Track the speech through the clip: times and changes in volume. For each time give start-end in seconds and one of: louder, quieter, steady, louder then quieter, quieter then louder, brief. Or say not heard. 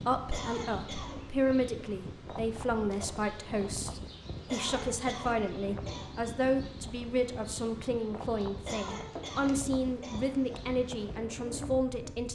0.0-12.3 steady.